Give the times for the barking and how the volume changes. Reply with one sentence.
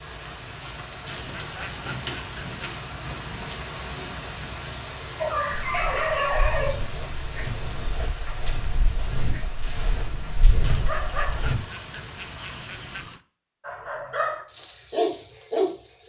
You can hear the barking from 5.2 to 11.6 s, getting quieter then louder; and briefly from 13.6 to 16.0 s.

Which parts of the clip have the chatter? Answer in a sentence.
The chatter can't be heard in this clip.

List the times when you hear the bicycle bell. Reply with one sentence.
You can't hear the bicycle bell here.